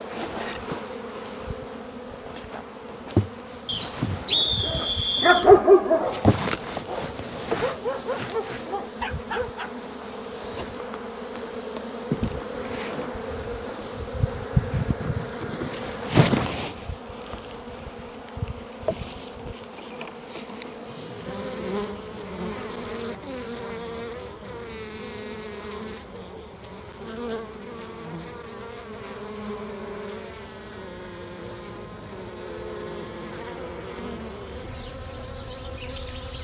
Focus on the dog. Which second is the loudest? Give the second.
6 s.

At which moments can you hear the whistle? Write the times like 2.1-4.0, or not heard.
3.6-5.5.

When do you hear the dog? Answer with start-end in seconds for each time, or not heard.
4.2-9.7.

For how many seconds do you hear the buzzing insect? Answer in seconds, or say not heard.
36 s.